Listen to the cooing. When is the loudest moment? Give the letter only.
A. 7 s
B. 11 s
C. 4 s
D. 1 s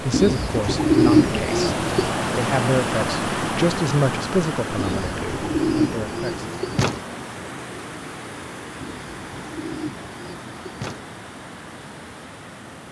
D.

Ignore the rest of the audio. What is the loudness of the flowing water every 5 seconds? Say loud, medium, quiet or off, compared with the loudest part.
loud, medium, quiet.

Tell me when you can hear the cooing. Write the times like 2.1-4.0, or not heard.
0.1-2.1, 4.8-7.0, 8.8-11.1.